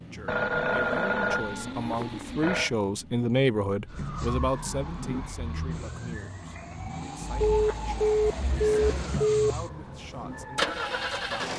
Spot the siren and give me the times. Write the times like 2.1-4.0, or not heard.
3.9-11.3.